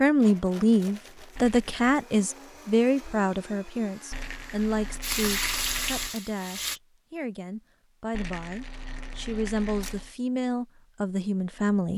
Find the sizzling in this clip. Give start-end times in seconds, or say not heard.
5.0-6.8.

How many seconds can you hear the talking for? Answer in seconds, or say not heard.
12 s.